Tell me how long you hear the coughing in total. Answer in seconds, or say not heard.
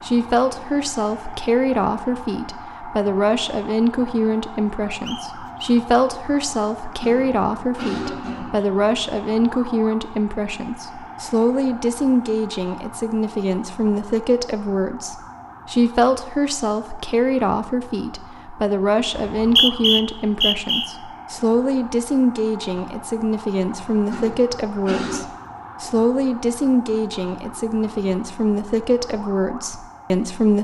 3 s.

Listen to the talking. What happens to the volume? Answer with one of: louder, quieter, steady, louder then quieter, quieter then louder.
steady.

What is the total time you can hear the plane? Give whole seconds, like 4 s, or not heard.
not heard.